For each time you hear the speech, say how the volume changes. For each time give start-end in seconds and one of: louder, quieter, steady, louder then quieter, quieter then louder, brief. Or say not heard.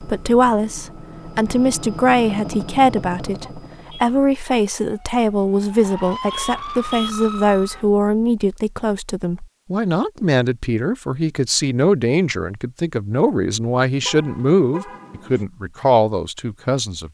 0.0-17.0 steady.